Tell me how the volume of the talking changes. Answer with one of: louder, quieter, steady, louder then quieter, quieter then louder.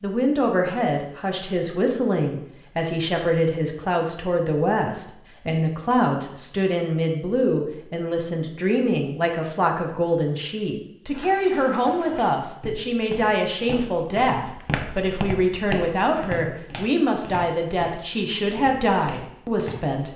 steady.